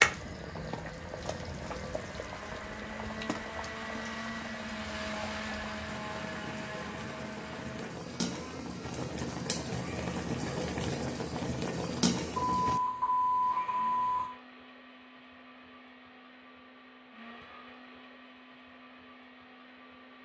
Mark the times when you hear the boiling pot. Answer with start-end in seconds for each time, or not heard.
0.0-12.8.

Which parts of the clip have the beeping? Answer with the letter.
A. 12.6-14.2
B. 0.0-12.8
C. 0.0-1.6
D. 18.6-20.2
A.